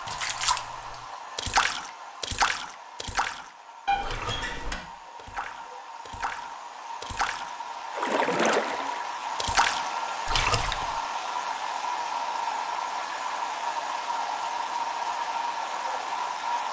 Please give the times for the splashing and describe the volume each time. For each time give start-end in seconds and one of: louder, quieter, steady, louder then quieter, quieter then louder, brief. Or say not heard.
0.1-11.0 quieter then louder.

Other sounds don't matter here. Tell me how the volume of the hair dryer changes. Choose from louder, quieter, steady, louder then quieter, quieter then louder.
louder.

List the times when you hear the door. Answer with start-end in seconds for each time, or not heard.
3.9-4.8.